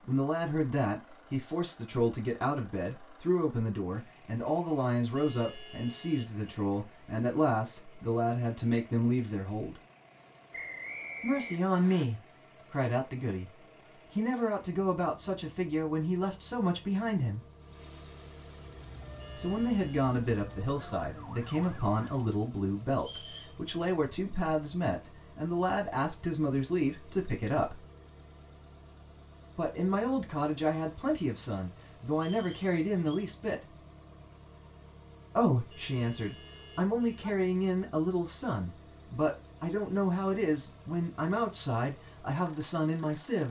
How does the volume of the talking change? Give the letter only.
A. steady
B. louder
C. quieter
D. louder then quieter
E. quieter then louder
A.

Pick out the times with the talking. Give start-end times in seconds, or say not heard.
0.0-9.8, 11.2-17.4, 19.4-27.9, 29.6-33.6, 35.4-43.4.